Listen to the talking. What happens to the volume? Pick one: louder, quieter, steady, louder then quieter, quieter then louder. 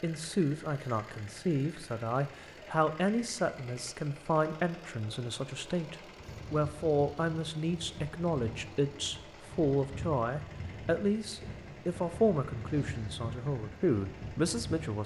steady.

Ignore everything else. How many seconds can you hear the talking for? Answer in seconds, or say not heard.
15 s.